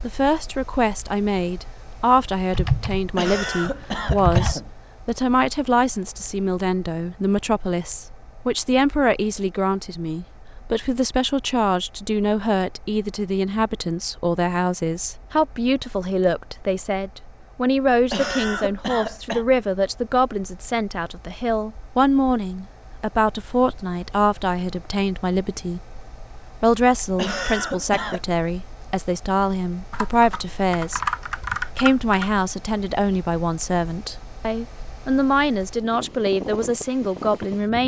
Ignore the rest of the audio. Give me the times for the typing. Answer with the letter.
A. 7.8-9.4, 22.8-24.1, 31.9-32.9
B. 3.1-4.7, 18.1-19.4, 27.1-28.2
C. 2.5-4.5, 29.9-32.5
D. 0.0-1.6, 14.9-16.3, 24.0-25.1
C.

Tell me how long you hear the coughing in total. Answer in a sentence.
You can hear the coughing for 4 seconds altogether.